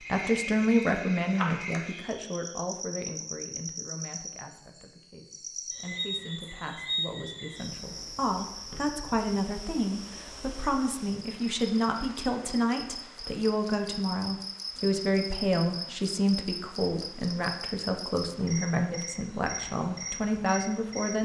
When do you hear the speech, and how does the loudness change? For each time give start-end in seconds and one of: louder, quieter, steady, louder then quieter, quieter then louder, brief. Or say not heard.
0.0-21.2 quieter then louder.